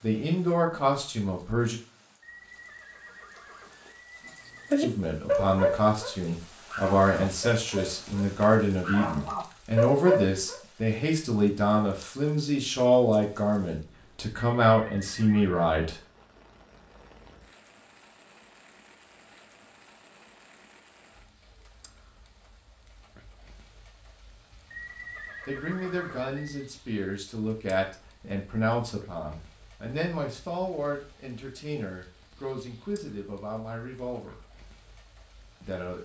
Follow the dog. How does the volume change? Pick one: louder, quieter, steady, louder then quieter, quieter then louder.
quieter then louder.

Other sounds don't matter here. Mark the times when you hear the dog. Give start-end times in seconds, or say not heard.
4.2-10.6.